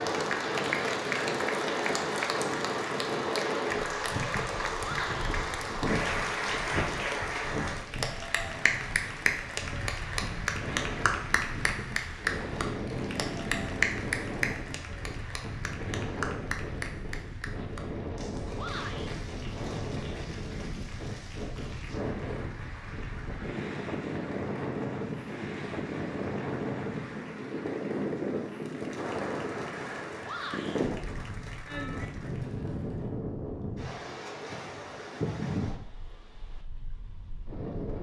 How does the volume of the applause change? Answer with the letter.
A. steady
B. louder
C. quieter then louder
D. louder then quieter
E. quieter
E.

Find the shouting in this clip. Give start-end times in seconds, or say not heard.
4.8-5.2, 18.6-19.1, 30.2-30.8.